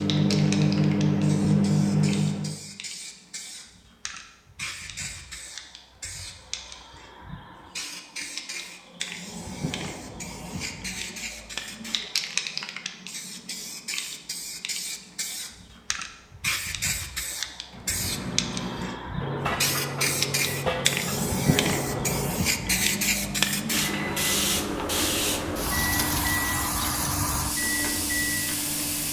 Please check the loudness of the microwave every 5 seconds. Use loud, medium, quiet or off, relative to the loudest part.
loud, off, off, medium, medium, medium.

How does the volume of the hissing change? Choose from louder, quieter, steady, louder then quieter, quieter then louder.
louder.